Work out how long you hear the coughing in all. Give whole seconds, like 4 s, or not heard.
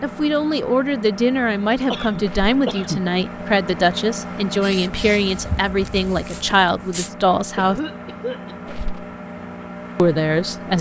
2 s.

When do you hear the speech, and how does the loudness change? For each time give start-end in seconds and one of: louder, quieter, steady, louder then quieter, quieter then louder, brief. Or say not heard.
0.0-7.8 steady
9.9-10.7 brief.